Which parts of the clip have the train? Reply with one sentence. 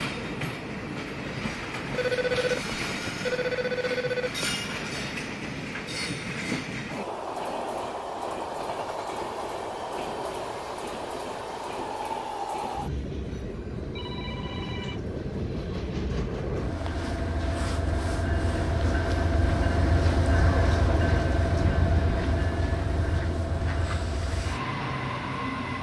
You can hear the train from 0.0 to 25.7 s.